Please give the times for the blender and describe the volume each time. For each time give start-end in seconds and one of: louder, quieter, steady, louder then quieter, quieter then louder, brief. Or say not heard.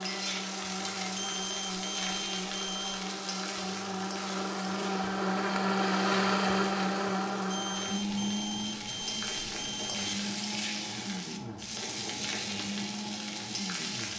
0.0-14.1 louder then quieter.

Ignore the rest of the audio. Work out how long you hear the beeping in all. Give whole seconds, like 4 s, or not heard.
4 s.